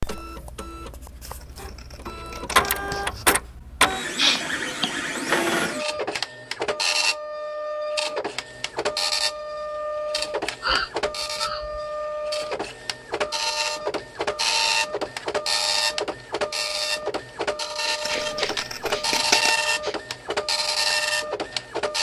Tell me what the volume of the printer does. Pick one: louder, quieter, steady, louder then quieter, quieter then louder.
steady.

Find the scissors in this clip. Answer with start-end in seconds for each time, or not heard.
1.2-3.2, 18.1-19.6.